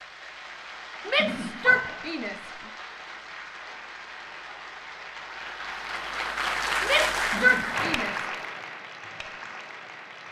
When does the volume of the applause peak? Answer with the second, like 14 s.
7 s.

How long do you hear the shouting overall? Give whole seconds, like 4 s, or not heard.
3 s.